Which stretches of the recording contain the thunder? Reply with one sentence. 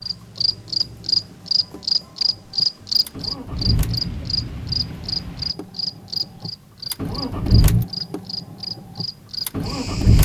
You can hear the thunder from 3.5 to 5.5 s.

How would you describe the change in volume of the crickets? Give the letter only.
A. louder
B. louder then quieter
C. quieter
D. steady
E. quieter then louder
C.